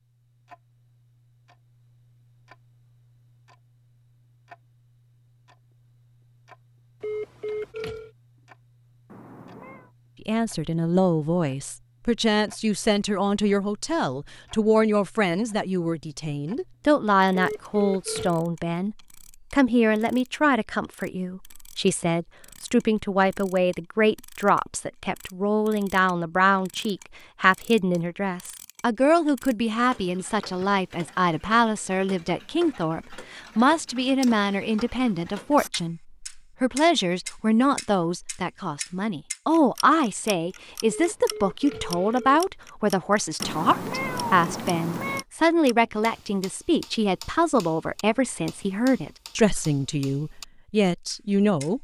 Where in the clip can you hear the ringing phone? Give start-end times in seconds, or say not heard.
7.0-8.1, 17.3-18.4, 40.9-42.4.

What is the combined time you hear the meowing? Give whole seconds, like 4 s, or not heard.
3 s.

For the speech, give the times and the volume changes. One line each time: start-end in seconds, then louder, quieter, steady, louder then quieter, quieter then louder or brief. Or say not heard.
10.2-51.7 steady.